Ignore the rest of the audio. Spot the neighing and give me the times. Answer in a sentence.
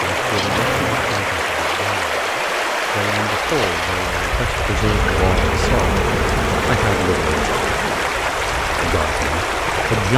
The neighing can't be heard in this clip.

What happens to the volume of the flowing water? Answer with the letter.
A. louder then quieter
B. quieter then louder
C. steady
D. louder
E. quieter
C.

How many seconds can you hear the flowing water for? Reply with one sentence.
The flowing water can be heard for 10 seconds in total.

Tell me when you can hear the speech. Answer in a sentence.
The speech can be heard from 0.0 to 2.3 s, from 2.9 to 6.0 s, from 6.7 to 7.5 s and from 8.8 to 10.1 s.